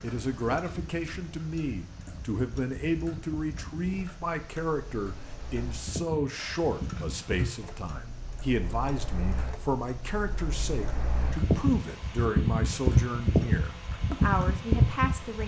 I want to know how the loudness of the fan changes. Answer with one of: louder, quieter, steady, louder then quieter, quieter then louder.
louder.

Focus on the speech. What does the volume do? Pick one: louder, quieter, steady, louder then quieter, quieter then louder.
steady.